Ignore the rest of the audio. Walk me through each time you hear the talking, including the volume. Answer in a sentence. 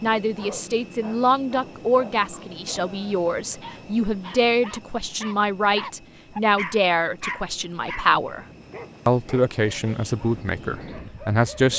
You can hear the talking from 0.0 to 8.4 s, at a steady volume; and briefly from 9.1 to 11.7 s.